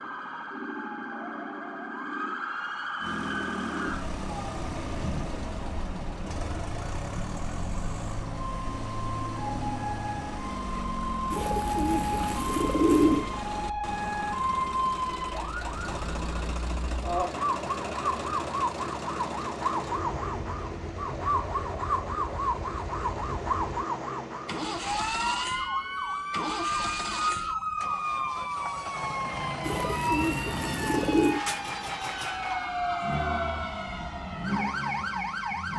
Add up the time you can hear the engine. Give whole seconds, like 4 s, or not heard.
33 s.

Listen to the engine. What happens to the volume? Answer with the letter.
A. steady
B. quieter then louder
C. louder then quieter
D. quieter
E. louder
A.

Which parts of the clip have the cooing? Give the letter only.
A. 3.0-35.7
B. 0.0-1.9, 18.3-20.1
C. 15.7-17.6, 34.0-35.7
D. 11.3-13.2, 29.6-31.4
D.